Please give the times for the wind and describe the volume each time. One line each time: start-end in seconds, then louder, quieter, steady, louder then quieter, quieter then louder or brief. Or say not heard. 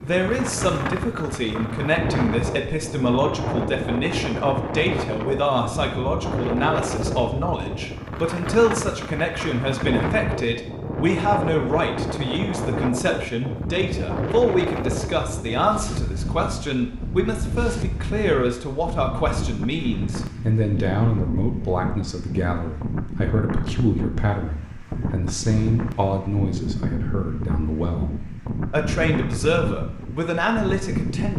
0.0-31.3 steady.